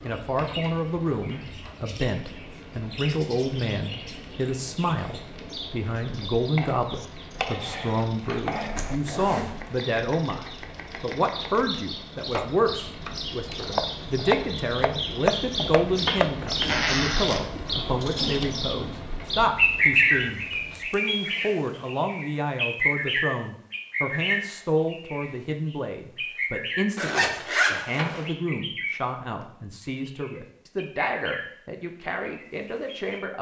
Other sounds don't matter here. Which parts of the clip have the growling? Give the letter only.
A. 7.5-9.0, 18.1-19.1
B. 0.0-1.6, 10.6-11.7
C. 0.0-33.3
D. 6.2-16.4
A.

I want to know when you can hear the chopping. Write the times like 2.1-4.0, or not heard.
6.2-16.4.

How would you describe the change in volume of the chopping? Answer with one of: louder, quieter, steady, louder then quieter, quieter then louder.
quieter then louder.